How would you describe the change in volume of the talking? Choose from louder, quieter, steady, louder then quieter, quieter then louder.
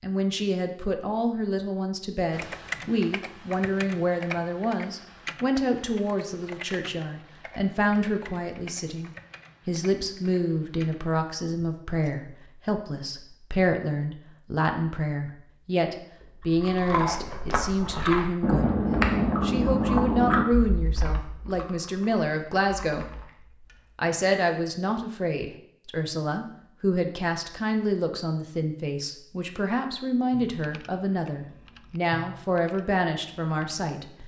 steady.